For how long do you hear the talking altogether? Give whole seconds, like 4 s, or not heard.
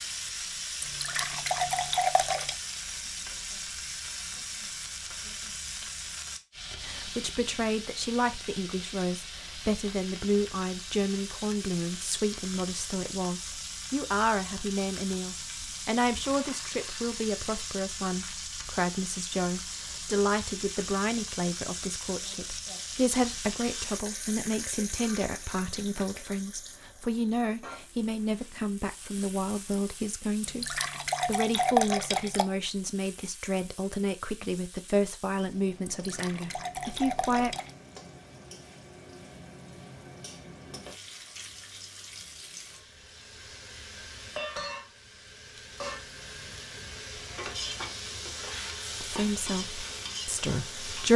33 s.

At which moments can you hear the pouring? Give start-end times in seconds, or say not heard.
0.8-2.5, 30.4-32.5, 35.9-37.7.